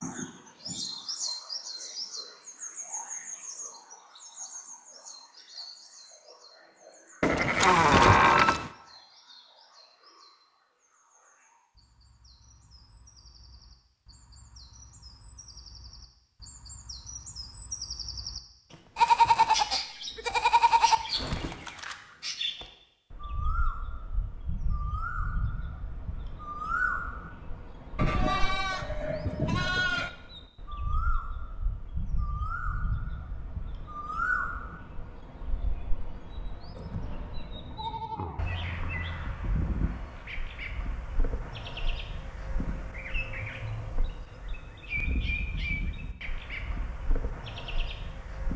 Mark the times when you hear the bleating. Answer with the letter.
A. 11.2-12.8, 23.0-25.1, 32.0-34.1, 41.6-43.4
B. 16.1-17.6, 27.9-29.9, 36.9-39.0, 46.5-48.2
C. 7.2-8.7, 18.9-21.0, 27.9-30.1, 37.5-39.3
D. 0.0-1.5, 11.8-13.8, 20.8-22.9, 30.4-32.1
C.